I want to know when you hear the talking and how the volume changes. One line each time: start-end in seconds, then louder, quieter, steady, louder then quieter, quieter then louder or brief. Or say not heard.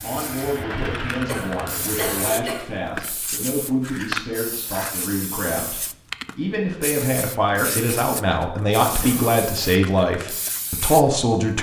0.0-11.5 louder.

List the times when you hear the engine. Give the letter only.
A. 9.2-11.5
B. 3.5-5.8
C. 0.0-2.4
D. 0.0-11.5
C.